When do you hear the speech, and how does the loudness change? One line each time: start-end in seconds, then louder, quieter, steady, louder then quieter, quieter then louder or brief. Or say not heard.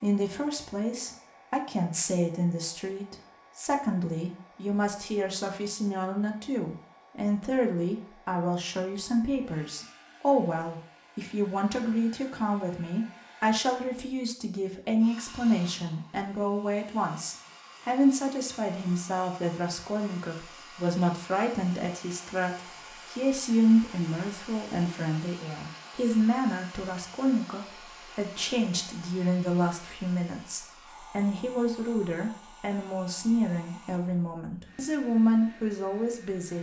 0.0-36.5 steady.